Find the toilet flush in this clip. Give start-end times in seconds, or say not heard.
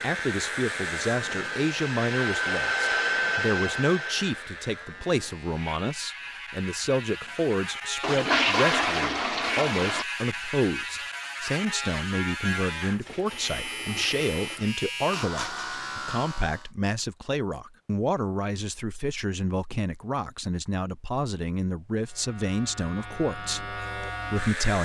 8.0-10.1, 13.1-14.8.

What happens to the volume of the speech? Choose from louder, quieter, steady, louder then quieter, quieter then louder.
steady.